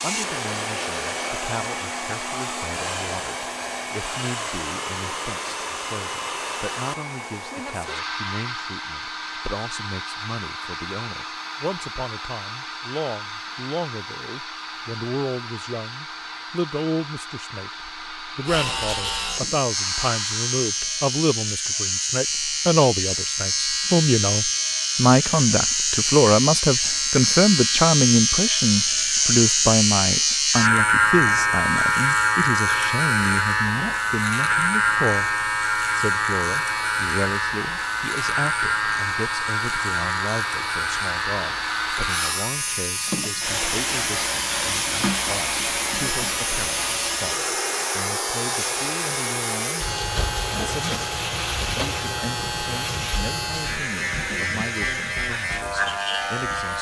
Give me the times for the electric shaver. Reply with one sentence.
The electric shaver can be heard from 18.4 to 56.7 s.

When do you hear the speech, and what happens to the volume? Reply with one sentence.
The speech can be heard from 0.0 to 56.7 s, getting louder then quieter.